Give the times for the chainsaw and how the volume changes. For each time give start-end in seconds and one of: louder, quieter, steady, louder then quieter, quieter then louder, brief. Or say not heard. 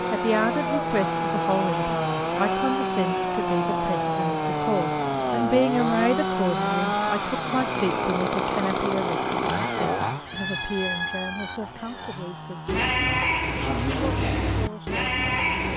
0.0-15.7 quieter.